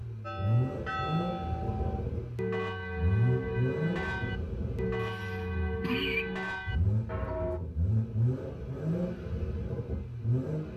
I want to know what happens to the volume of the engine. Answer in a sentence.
The loudness of the engine goes down, then up.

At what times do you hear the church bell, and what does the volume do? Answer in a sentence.
The church bell can be heard from 0.2 to 7.6 s, at a steady volume.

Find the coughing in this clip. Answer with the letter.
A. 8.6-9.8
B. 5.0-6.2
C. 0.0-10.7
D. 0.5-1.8
B.